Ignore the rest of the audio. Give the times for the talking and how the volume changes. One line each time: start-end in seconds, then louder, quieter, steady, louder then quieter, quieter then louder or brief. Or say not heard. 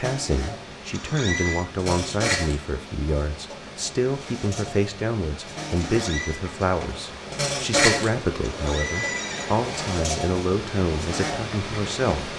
0.0-12.3 steady.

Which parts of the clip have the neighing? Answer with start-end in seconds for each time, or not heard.
0.9-1.6, 5.8-6.4, 8.4-9.6.